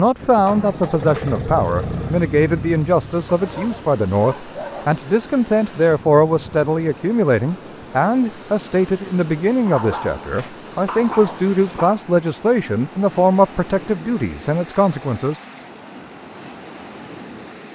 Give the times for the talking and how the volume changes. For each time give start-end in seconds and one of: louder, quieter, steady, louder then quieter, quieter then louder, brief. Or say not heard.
0.0-15.4 steady.